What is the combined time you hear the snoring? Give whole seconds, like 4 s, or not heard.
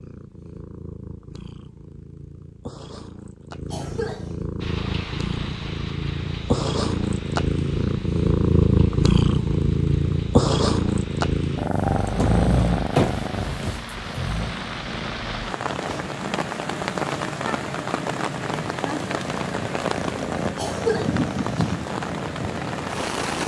3 s.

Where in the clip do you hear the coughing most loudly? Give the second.
21 s.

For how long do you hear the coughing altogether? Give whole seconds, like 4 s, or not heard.
2 s.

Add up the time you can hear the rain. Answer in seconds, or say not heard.
19 s.